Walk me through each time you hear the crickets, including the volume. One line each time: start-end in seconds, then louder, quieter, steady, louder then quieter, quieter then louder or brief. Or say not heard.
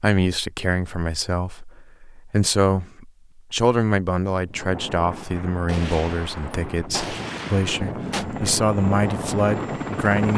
not heard.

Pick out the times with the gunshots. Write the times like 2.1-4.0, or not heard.
5.7-8.2.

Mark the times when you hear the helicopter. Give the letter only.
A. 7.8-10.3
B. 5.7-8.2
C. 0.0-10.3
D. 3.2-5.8
A.